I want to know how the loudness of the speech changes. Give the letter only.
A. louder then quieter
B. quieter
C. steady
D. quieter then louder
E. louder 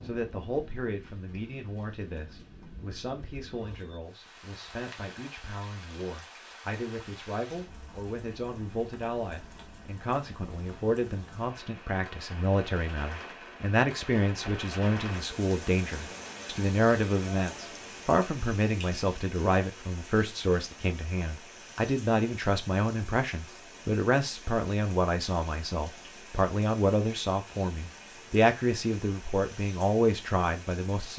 E.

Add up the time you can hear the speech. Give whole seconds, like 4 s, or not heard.
31 s.